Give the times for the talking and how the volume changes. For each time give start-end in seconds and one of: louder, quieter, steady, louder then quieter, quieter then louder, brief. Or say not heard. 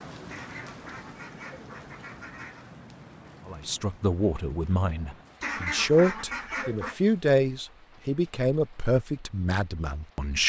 3.5-10.4 louder then quieter.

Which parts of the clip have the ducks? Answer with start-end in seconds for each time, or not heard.
0.2-2.7, 5.4-7.0.